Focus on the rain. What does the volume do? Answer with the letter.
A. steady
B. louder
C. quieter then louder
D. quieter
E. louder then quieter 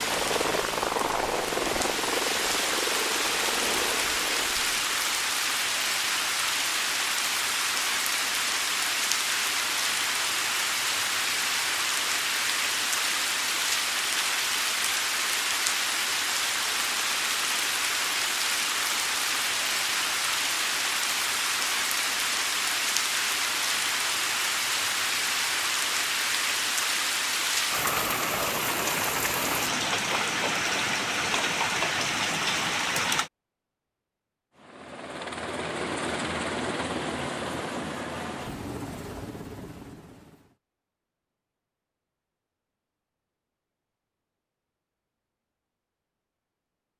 A.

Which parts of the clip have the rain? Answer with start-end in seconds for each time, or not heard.
0.0-33.3.